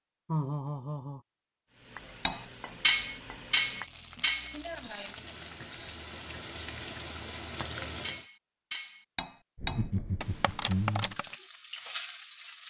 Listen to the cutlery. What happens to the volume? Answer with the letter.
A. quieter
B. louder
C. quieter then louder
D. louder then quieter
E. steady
A.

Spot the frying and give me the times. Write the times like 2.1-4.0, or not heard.
1.7-8.2, 10.9-12.6.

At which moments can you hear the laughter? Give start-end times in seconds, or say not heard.
0.2-1.2, 9.6-11.2.